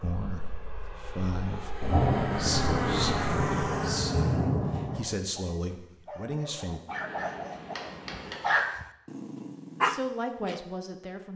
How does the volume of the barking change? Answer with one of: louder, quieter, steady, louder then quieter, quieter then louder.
louder.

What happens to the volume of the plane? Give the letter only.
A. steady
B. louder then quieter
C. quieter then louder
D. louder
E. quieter
D.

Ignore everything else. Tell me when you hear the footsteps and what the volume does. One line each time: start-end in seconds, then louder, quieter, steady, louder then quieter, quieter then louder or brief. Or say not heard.
not heard.